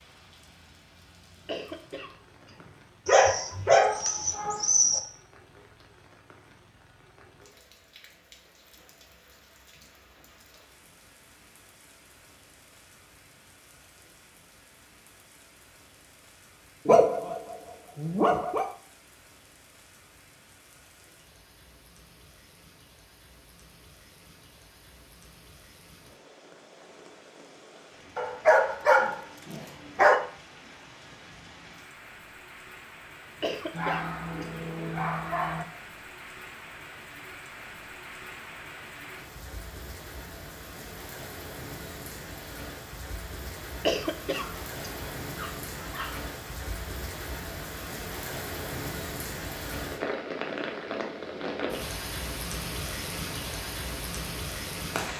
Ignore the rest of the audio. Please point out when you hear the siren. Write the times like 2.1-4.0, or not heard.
not heard.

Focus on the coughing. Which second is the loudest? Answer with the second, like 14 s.
44 s.